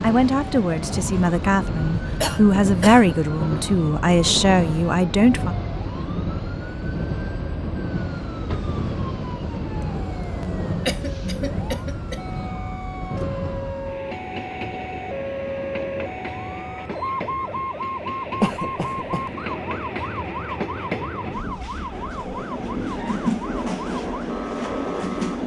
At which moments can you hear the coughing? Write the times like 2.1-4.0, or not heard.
2.2-3.1, 10.2-12.4, 18.4-19.3.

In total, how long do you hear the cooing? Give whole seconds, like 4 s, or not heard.
not heard.